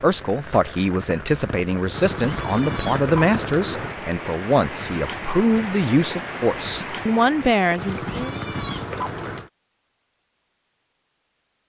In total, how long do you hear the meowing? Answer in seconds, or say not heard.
4 s.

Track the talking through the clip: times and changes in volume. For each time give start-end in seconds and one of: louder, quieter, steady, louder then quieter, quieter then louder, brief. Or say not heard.
0.0-8.4 steady.